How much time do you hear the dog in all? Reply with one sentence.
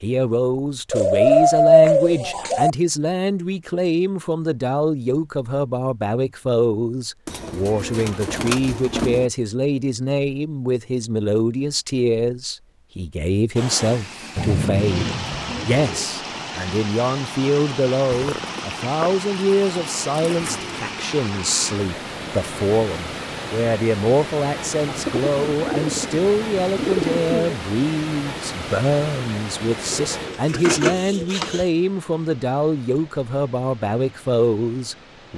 You can't hear the dog here.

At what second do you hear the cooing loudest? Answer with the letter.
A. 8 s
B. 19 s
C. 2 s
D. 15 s
C.